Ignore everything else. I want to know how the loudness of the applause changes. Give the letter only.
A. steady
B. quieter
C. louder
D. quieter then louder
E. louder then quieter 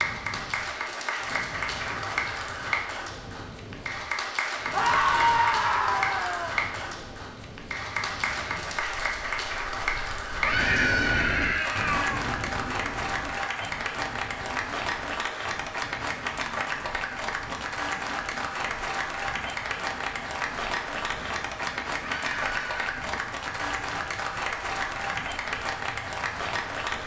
A.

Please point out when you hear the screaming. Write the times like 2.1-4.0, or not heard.
4.7-6.5, 10.4-12.2, 22.0-23.0.